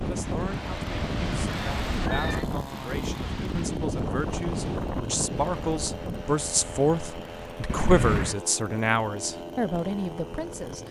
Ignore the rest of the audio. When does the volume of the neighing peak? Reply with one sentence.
The volume of the neighing peaks at 8 seconds.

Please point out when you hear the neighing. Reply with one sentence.
The neighing can be heard from 1.1 to 2.5 s and from 7.7 to 8.4 s.